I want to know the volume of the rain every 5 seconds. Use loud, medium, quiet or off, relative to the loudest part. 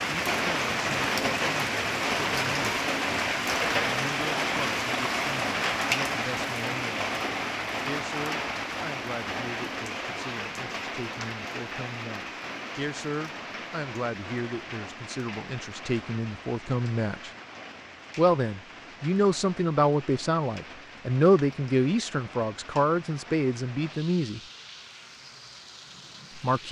loud, loud, medium, quiet, quiet, quiet.